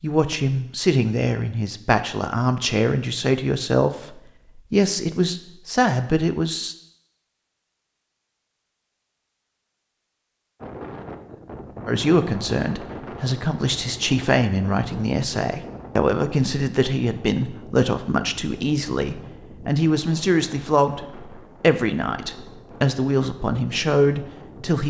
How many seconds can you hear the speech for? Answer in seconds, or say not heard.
20 s.